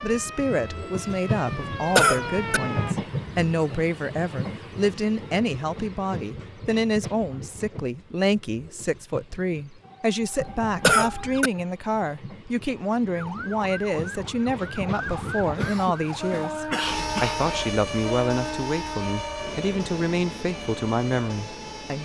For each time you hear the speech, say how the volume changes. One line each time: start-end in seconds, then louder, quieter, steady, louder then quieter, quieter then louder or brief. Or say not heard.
0.0-22.0 steady.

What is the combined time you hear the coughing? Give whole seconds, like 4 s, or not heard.
4 s.